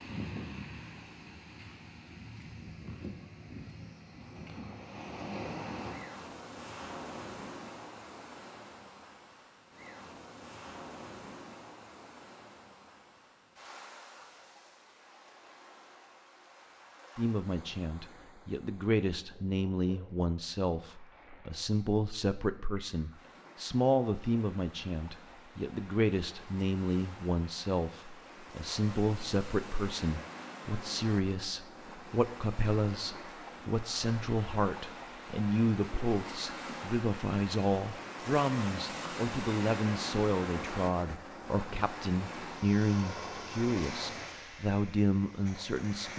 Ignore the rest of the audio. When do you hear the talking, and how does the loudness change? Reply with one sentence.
You can hear the talking from 17.1 to 46.1 s, at a steady volume.